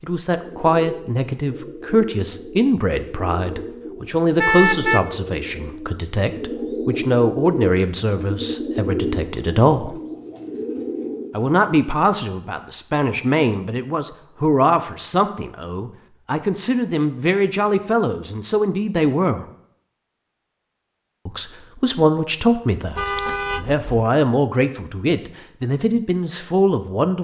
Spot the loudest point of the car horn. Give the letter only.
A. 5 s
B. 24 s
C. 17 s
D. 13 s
A.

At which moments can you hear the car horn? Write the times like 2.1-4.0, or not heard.
4.3-5.1, 22.9-24.1.